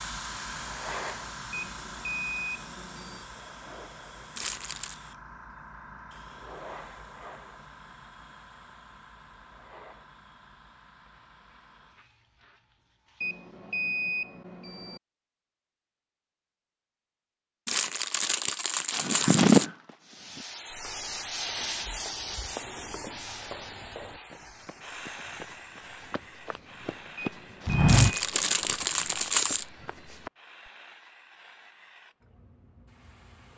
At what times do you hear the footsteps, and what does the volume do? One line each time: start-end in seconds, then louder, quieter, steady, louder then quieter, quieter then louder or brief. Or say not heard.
18.9-30.3 quieter then louder.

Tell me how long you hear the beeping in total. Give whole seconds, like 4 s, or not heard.
5 s.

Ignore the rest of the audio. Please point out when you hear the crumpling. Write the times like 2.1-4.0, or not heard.
4.3-5.0, 17.6-19.7, 27.9-29.6.